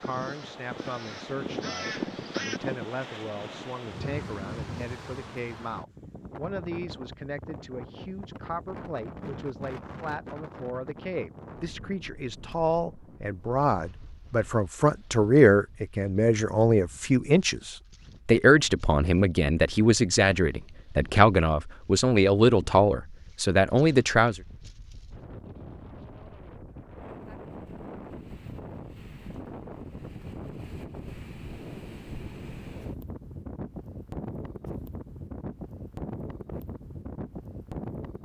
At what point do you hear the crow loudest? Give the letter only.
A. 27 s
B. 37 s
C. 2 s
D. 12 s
C.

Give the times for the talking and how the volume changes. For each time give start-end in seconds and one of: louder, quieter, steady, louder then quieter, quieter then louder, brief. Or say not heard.
0.0-24.4 louder.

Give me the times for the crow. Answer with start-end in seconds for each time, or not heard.
0.0-2.6.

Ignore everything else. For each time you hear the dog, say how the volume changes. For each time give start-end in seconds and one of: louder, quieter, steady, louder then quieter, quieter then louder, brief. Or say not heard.
not heard.